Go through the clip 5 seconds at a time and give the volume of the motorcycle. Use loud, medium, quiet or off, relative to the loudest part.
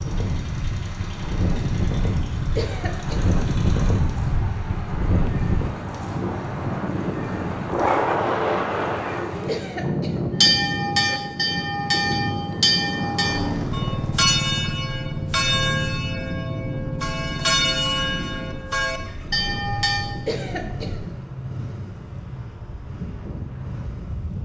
medium, medium, loud, loud, medium.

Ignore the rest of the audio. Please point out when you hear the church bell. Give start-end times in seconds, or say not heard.
10.4-20.1.